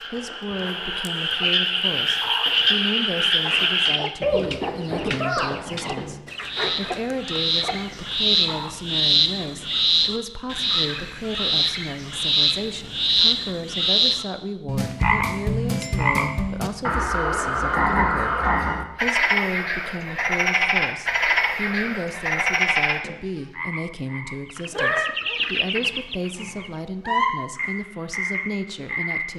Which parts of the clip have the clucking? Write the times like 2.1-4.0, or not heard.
1.4-8.9, 24.4-26.7.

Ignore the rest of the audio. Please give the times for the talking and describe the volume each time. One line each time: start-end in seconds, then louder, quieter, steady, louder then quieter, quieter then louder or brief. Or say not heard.
0.1-29.3 steady.